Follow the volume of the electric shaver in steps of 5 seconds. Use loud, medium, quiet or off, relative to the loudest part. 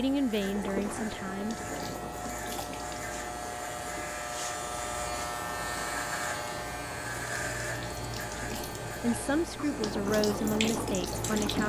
loud, loud, medium.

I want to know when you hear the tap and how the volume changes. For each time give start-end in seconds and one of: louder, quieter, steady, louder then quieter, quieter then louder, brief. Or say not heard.
0.0-11.6 quieter then louder.